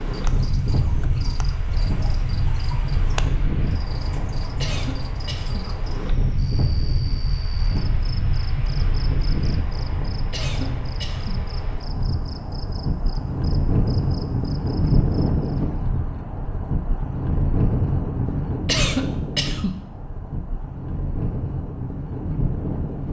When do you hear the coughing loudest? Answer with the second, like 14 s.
19 s.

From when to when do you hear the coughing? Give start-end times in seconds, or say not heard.
4.6-5.7, 10.3-11.4, 18.6-19.8.